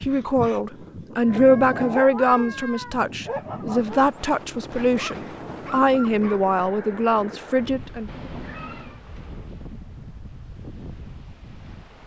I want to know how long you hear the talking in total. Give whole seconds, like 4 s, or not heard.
8 s.